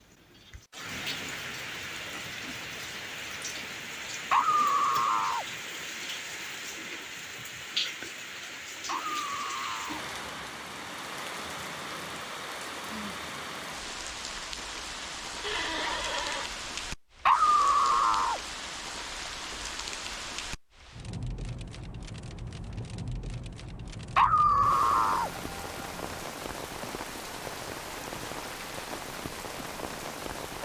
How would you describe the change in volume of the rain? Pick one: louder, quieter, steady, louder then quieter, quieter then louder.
steady.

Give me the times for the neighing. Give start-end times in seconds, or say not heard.
15.4-16.5.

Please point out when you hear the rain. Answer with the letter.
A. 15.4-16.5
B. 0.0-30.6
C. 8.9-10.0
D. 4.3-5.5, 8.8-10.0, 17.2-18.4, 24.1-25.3
B.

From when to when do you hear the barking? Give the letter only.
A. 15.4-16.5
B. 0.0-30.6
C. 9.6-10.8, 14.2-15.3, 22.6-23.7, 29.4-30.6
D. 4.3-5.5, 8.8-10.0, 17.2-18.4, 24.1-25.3
D.